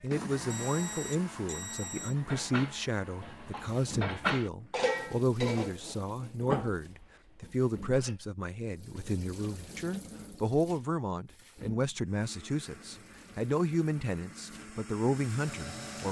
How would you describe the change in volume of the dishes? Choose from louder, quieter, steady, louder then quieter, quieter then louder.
louder then quieter.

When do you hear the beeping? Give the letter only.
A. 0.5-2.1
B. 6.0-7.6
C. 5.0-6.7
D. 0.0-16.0
A.